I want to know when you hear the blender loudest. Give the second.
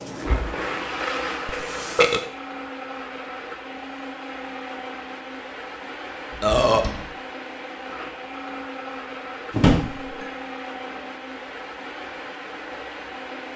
1 s.